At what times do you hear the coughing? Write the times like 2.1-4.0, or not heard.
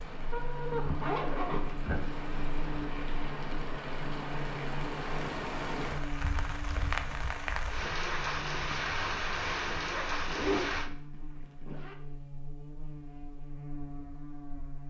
not heard.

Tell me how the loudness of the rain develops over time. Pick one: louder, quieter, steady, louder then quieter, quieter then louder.
louder.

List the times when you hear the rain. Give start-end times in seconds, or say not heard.
0.0-10.9.